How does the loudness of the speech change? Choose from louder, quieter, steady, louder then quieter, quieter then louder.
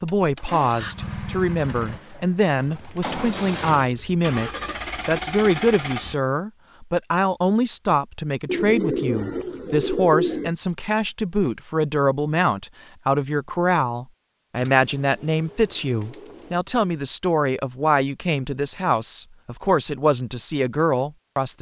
steady.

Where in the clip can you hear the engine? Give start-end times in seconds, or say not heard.
0.0-6.2.